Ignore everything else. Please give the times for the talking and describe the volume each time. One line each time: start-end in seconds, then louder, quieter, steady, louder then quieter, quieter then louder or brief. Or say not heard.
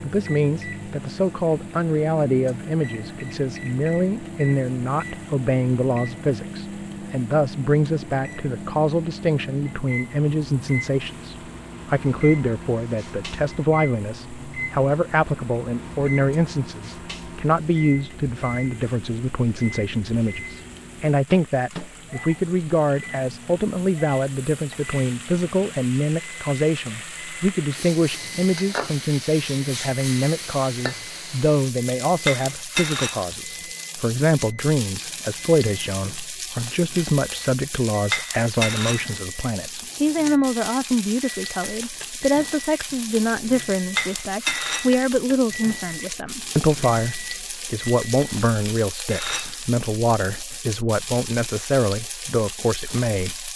0.0-53.5 steady.